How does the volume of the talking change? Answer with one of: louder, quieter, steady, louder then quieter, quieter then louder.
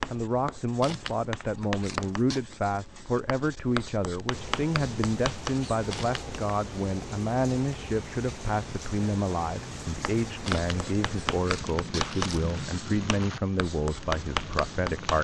steady.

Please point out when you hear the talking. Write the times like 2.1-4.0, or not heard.
0.1-15.1.